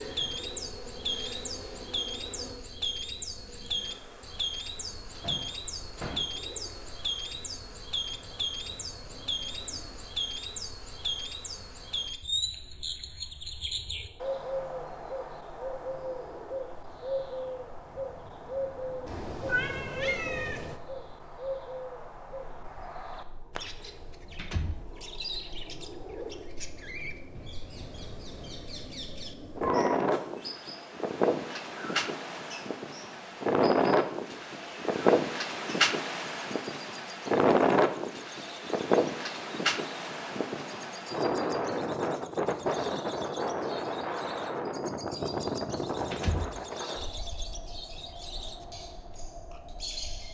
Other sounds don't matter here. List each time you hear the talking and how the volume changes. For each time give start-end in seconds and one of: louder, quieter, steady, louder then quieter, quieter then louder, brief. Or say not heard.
not heard.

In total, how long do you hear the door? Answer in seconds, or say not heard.
2 s.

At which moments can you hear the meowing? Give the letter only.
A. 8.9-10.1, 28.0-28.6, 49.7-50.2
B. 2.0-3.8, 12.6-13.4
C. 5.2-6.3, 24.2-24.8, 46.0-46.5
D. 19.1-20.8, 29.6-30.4
D.